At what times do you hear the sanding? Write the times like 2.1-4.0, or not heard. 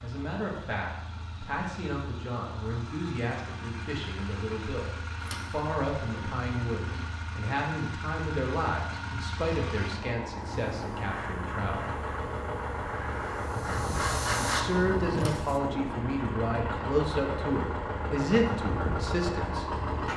not heard.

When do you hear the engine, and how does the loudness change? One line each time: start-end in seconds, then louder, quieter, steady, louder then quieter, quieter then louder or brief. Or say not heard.
0.0-20.1 louder.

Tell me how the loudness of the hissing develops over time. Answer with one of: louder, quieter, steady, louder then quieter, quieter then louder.
louder.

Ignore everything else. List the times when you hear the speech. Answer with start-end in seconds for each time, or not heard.
0.0-11.9, 14.4-19.6.